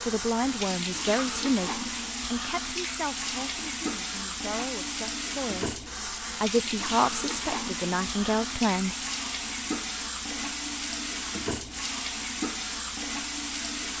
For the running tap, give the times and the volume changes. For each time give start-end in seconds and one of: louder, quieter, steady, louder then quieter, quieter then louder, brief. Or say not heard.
0.0-13.9 steady.